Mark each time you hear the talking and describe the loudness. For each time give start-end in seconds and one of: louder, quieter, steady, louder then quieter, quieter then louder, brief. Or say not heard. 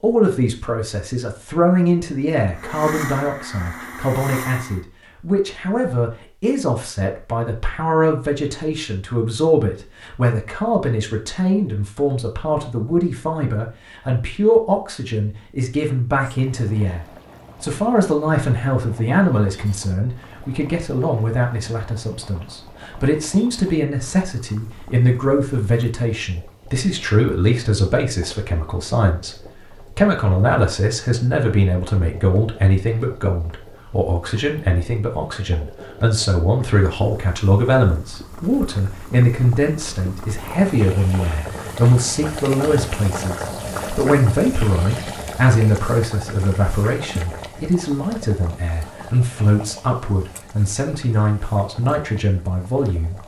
0.0-29.4 steady
29.9-53.2 steady.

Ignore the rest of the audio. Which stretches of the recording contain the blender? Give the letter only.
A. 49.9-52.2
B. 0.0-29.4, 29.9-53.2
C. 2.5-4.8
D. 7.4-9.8
C.